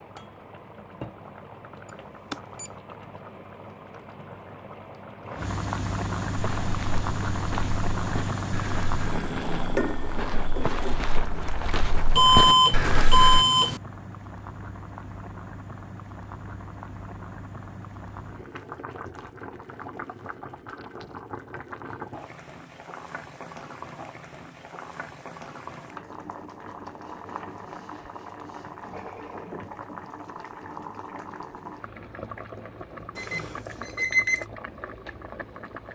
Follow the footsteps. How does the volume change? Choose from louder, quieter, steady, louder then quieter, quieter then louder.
louder.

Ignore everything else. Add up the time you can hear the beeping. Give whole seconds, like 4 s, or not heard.
4 s.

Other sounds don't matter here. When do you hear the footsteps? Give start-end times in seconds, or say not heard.
6.3-13.4.